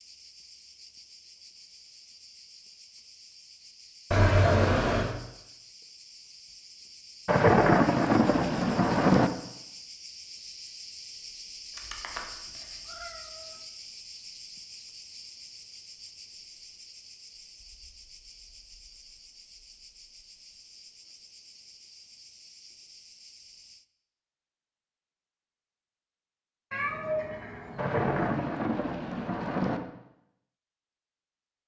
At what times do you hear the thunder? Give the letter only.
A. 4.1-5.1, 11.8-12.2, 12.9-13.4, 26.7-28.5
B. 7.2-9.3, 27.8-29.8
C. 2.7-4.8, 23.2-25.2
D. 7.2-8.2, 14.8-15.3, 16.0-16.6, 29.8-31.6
B.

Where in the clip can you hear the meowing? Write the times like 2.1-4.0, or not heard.
4.1-5.1, 11.8-12.2, 12.9-13.4, 26.7-28.5.